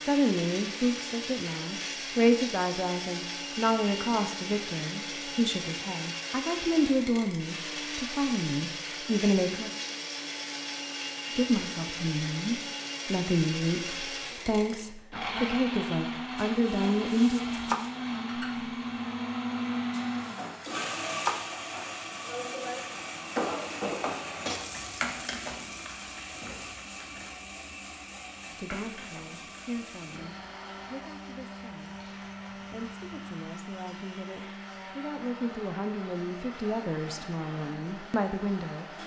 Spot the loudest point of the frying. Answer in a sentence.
The volume of the frying peaks at 24 seconds.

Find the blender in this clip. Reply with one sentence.
You can hear the blender from 0.0 to 39.0 s.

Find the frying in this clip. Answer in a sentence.
The frying can be heard from 17.2 to 35.1 s.